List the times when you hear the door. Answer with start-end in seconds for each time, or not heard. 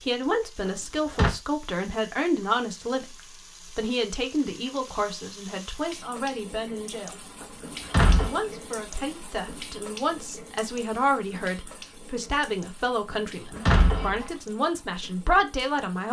0.7-1.4, 7.4-8.3, 13.1-14.2.